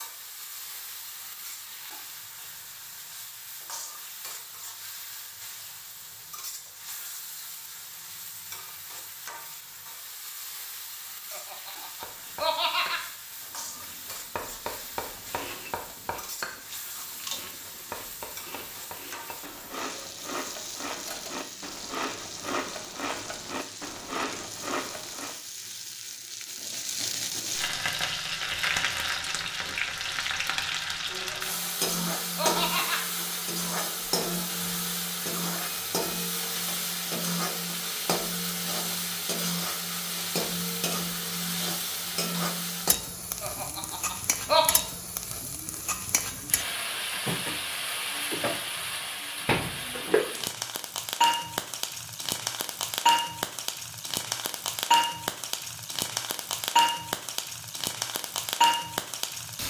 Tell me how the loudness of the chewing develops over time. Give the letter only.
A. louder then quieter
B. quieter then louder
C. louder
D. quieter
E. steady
C.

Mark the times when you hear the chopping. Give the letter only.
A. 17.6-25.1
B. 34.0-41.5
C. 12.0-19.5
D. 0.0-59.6
C.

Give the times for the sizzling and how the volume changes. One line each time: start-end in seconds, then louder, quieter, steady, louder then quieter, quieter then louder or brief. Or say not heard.
0.0-59.6 louder.